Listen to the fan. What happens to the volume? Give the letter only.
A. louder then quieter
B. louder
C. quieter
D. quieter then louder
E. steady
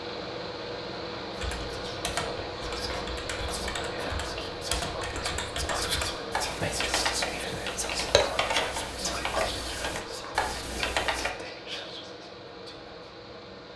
C.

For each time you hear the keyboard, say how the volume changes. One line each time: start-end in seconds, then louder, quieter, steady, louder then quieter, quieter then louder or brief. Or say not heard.
1.4-11.3 louder.